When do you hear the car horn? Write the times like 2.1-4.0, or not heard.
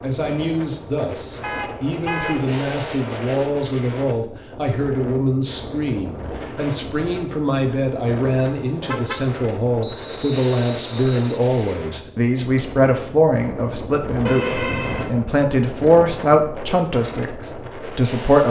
1.4-2.5, 8.2-9.2, 14.2-15.2.